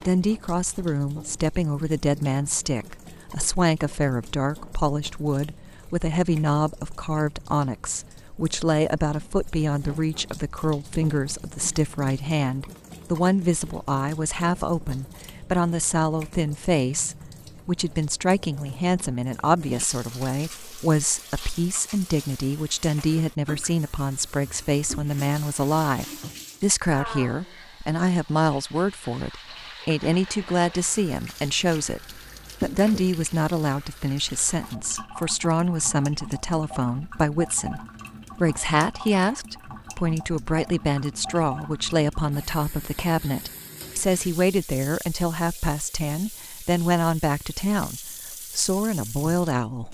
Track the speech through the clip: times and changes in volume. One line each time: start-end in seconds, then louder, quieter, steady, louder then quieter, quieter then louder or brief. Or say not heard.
0.1-49.8 steady.